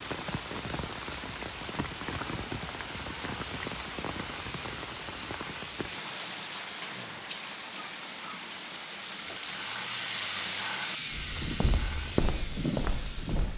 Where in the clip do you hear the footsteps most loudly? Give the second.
12 s.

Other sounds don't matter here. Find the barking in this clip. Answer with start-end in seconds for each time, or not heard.
not heard.